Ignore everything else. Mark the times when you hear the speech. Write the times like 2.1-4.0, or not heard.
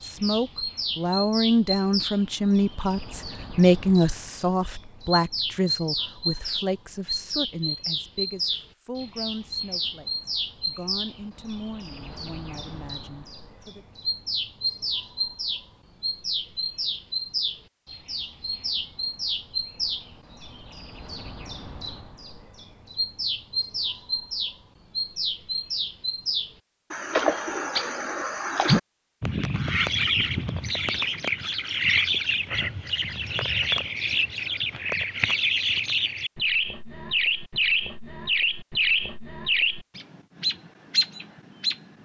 0.0-13.8.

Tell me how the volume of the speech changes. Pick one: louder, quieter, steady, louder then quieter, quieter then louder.
quieter.